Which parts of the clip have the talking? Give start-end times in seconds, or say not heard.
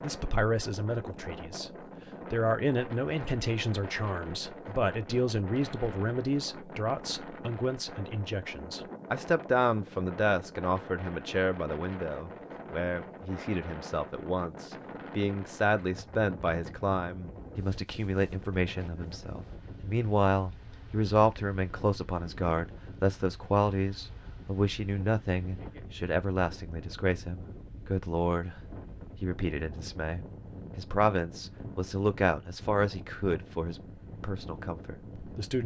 0.0-1.7, 2.3-28.6, 29.2-35.6.